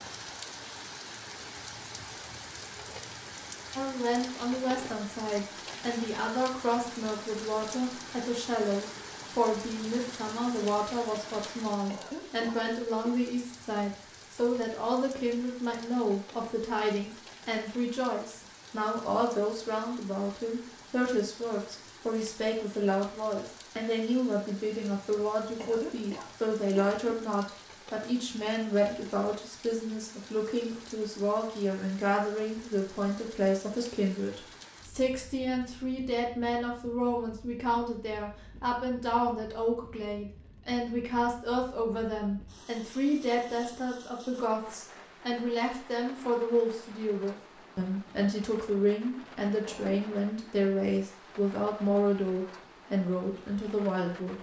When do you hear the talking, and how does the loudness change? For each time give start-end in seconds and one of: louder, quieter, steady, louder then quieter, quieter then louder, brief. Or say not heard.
3.8-54.3 steady.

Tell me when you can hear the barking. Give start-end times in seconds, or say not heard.
not heard.